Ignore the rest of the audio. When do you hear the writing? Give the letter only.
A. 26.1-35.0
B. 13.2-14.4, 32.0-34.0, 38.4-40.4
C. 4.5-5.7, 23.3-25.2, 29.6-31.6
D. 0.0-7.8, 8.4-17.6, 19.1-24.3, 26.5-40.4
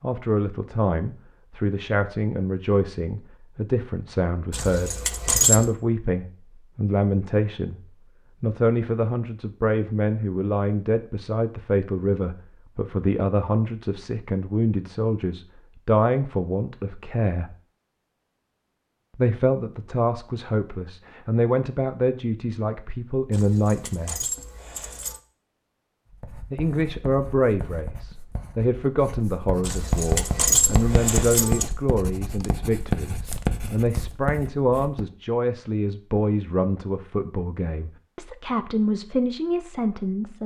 A.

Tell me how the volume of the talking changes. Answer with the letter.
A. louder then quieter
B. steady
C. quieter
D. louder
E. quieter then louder
B.